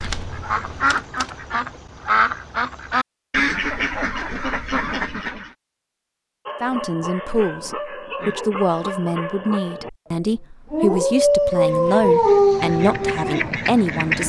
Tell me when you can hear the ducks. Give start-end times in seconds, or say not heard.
0.0-5.5, 11.4-14.2.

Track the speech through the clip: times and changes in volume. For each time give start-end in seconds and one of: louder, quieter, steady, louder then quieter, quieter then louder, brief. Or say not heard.
6.6-14.2 steady.